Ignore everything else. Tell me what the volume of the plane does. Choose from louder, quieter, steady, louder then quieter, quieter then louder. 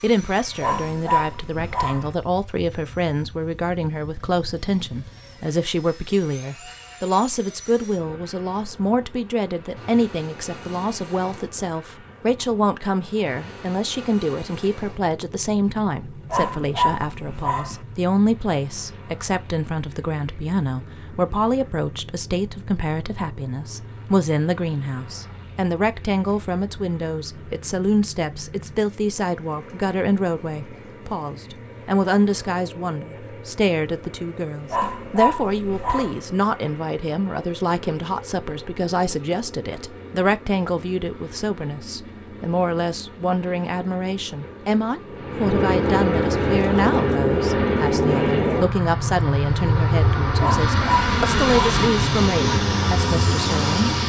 louder.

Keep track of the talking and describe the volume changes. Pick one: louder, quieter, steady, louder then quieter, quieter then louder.
steady.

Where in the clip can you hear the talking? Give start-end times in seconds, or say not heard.
0.0-54.0.